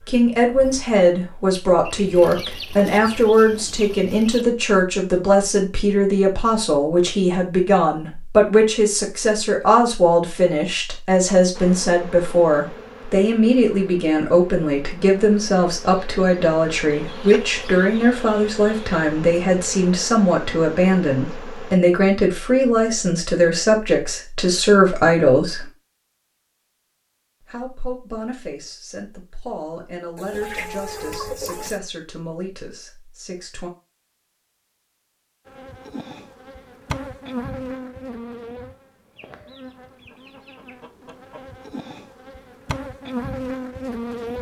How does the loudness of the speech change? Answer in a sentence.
The volume of the speech goes down.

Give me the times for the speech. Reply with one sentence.
The speech can be heard from 0.1 to 25.7 s and from 27.4 to 33.7 s.